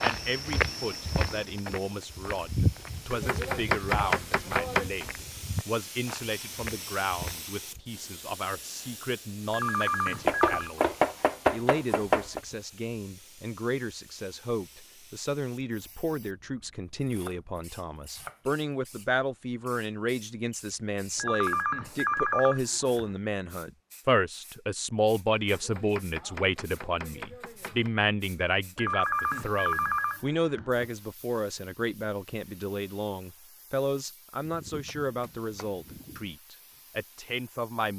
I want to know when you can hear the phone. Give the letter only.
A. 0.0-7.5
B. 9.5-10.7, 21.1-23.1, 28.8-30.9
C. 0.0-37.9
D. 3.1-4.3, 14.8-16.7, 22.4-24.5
B.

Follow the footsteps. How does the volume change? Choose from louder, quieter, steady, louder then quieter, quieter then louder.
quieter.